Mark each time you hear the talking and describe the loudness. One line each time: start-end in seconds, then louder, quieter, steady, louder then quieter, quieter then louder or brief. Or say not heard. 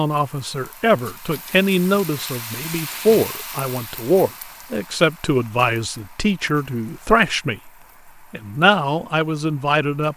0.0-7.7 steady
8.3-10.1 brief.